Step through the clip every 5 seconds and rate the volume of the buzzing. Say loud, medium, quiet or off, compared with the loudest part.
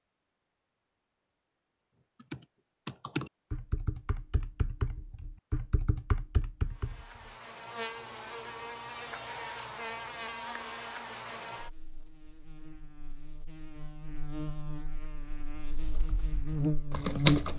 off, medium, medium, loud.